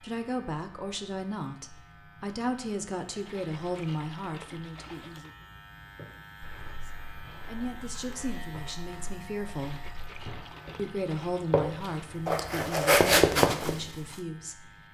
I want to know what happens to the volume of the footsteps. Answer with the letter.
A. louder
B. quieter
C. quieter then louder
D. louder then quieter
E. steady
A.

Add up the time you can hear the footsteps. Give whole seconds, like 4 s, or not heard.
8 s.